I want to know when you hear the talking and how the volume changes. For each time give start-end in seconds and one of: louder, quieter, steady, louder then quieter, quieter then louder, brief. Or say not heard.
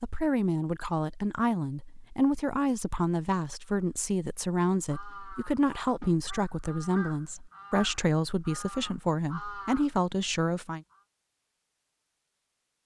0.0-10.8 steady.